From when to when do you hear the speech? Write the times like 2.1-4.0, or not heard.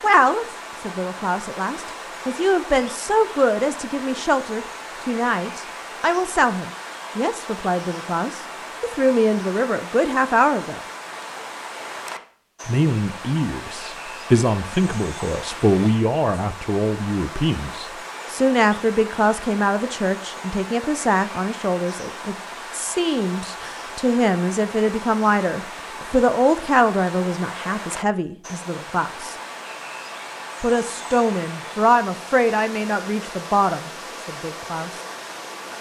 0.0-10.8, 12.7-29.4, 30.6-35.0.